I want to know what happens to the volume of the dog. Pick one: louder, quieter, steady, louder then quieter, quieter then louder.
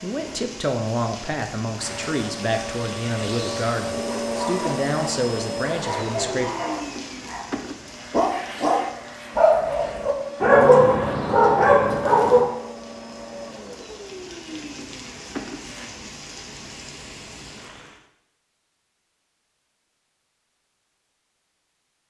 louder.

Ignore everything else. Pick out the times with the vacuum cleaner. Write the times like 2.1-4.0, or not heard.
1.8-15.9.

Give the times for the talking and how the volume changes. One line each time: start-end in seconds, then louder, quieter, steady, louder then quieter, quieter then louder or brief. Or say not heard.
0.0-6.5 steady.